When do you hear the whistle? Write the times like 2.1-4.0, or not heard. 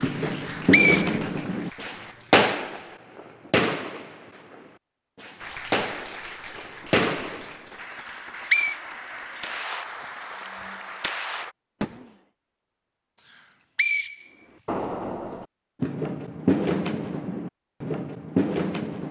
0.2-1.1, 8.1-8.8, 13.2-14.9.